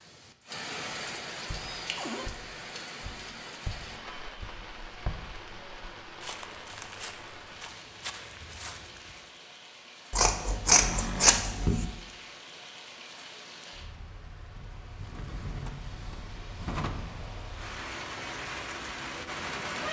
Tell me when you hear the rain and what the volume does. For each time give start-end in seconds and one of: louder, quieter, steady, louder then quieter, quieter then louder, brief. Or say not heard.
0.0-19.8 quieter then louder.